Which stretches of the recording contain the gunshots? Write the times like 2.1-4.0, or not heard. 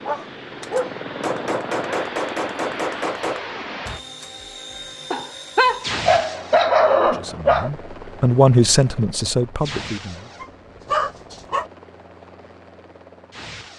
0.6-4.3.